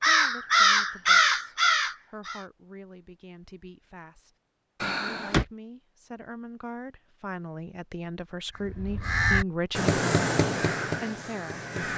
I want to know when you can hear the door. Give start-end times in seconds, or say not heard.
4.8-5.5.